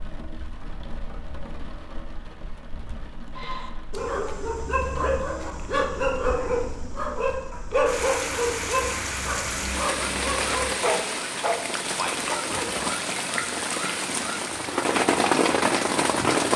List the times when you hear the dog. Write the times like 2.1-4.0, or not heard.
3.4-12.9.